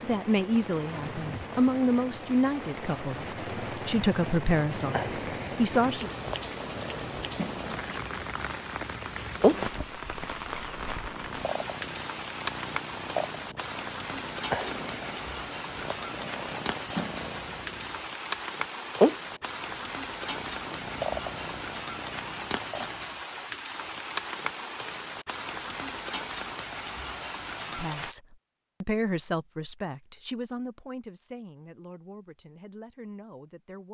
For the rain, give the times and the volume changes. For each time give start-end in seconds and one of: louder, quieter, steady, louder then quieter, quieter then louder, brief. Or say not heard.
0.0-28.1 steady.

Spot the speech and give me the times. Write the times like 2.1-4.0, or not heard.
0.0-6.1, 27.8-33.8.